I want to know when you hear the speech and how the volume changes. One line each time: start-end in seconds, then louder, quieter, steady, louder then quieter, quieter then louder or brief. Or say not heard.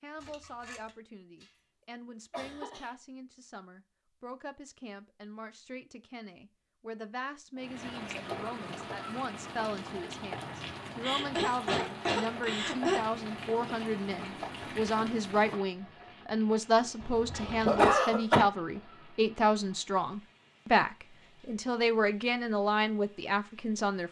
0.0-24.0 louder.